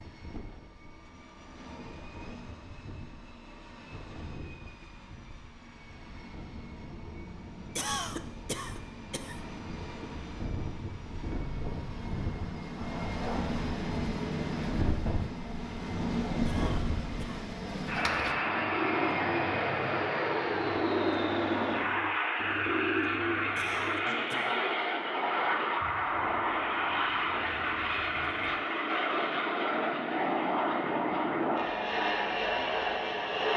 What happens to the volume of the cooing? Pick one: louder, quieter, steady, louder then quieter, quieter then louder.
quieter.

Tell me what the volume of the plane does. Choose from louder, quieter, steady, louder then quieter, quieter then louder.
louder.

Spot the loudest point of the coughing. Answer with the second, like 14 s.
8 s.